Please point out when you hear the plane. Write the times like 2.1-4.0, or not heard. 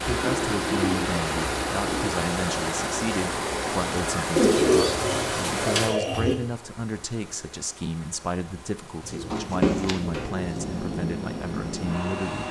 10.2-12.4.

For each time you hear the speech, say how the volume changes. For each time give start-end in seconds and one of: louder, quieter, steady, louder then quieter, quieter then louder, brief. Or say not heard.
0.0-12.4 steady.